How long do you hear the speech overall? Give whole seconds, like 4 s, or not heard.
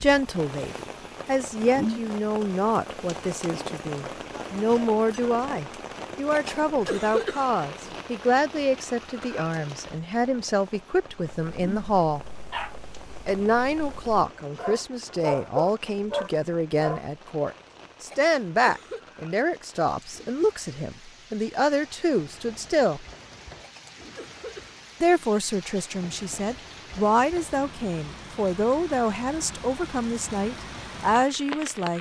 29 s.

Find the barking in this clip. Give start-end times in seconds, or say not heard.
11.2-17.0.